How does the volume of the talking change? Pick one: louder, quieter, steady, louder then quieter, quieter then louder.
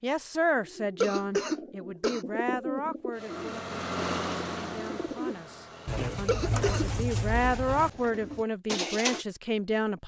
quieter then louder.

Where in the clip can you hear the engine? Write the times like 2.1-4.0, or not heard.
3.1-6.1.